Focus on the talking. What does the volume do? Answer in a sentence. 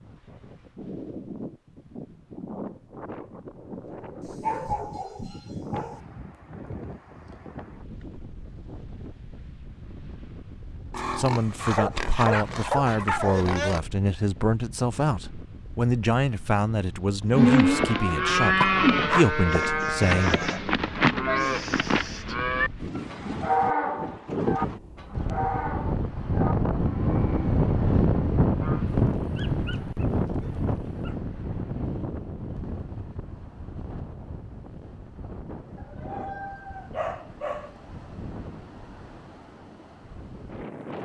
The loudness of the talking stays about the same.